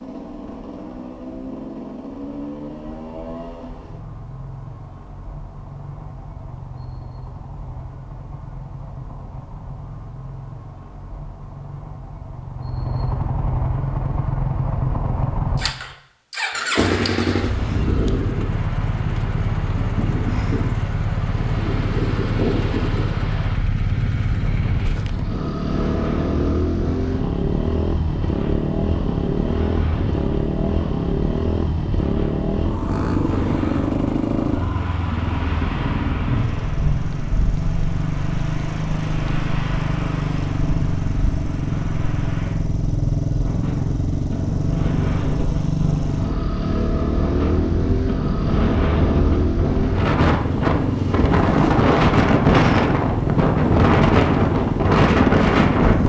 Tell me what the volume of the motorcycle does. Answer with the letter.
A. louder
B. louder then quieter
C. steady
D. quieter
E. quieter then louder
A.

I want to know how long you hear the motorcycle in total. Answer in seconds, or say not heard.
56 s.